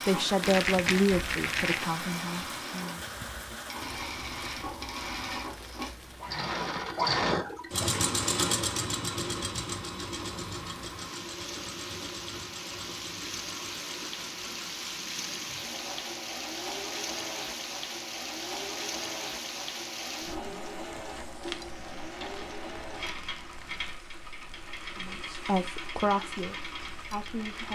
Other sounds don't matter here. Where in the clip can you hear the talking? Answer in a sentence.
You can hear the talking from 0.1 to 3.0 s and from 24.9 to 27.6 s.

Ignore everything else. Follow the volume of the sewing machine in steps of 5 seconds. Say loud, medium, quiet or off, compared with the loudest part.
medium, loud, medium, medium, medium, medium.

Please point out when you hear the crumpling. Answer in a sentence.
The crumpling can be heard from 0.4 to 1.9 s and from 21.4 to 23.9 s.